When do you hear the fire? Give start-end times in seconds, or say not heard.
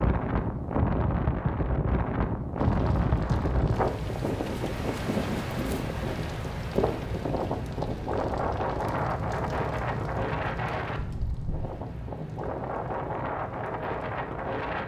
2.5-14.8.